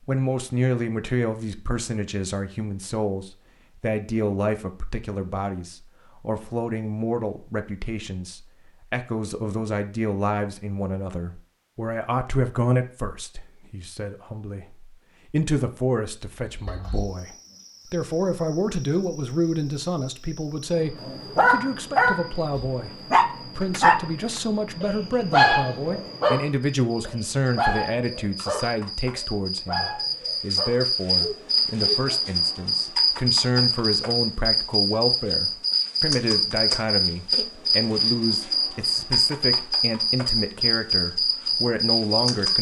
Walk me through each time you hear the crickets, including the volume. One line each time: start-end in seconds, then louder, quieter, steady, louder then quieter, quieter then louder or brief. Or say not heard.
16.4-42.5 louder.